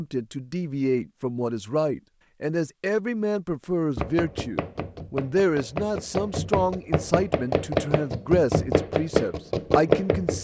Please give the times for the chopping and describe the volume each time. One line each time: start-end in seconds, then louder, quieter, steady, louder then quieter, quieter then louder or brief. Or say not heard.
4.0-10.3 louder.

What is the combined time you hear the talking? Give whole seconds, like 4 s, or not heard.
10 s.